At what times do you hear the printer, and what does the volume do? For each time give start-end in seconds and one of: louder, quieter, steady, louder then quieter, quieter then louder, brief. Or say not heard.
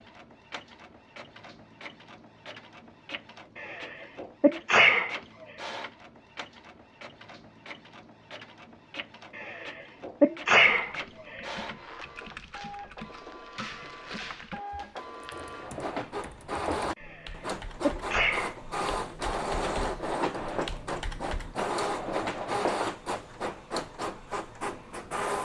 0.0-25.3 louder.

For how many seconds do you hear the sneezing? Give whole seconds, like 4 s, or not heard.
5 s.